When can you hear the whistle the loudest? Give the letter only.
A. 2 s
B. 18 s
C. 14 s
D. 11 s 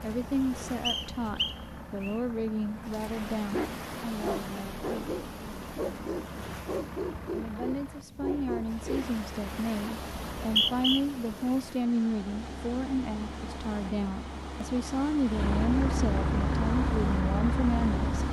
D.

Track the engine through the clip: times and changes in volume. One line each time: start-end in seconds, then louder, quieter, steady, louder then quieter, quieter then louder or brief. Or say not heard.
0.0-18.2 louder.